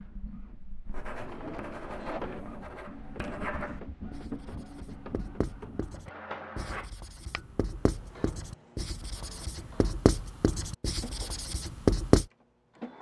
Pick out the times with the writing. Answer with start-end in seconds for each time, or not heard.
0.8-12.2.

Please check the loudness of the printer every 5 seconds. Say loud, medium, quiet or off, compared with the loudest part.
loud, loud, medium.